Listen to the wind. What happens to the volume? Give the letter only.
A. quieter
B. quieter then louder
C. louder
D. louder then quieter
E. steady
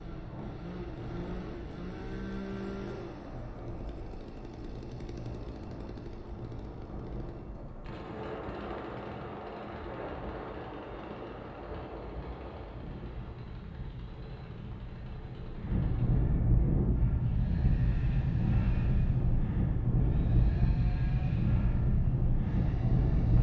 C.